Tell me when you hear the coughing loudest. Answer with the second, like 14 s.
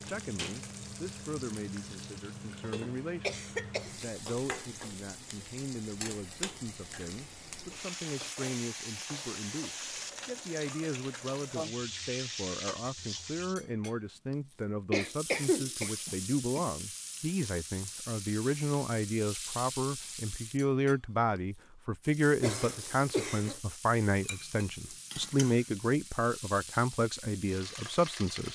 15 s.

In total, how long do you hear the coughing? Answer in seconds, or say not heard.
4 s.